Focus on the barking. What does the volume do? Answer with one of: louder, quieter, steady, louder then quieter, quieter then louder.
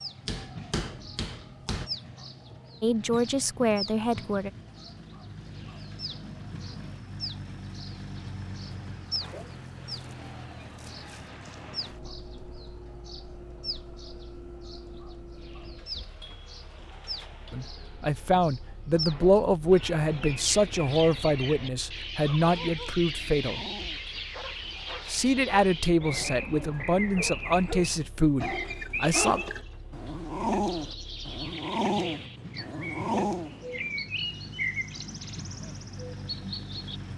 louder.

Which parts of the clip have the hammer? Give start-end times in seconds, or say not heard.
0.2-1.9.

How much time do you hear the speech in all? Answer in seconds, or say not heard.
12 s.